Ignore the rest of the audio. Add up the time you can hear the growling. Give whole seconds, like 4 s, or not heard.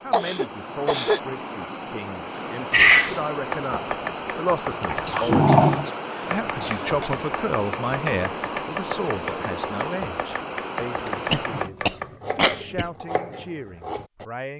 3 s.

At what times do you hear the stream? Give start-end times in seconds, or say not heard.
0.0-11.7.